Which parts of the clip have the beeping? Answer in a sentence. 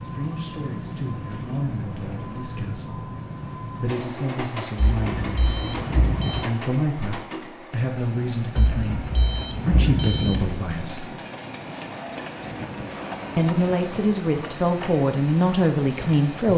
The beeping can be heard from 4.8 to 6.5 s and from 8.6 to 10.5 s.